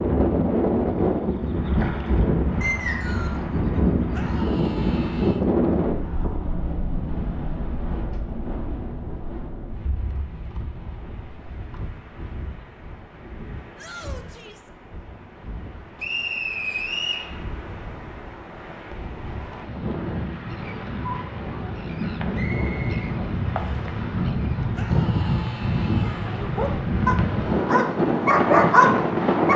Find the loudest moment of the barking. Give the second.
29 s.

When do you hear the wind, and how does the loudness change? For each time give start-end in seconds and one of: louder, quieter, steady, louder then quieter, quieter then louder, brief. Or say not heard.
0.0-29.5 quieter then louder.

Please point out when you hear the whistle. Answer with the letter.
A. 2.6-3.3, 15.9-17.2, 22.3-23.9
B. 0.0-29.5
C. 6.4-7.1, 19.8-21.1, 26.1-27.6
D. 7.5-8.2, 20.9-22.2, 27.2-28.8
A.